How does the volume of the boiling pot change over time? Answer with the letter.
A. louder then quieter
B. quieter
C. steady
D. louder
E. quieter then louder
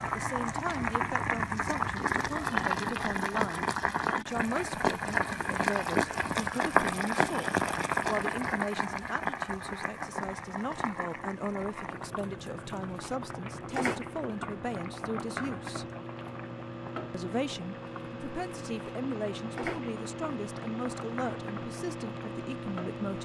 B.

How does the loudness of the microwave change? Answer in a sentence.
The loudness of the microwave goes up.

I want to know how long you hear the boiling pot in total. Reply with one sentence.
You can hear the boiling pot for 23 seconds altogether.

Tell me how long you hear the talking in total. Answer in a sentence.
You can hear the talking for 22 seconds altogether.